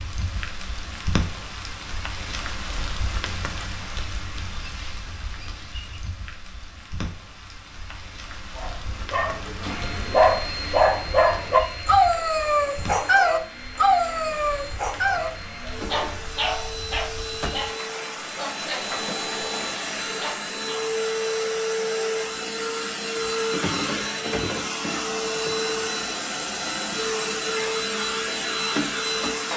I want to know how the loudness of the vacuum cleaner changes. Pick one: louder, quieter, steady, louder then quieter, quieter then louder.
louder.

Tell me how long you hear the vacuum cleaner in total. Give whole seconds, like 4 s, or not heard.
20 s.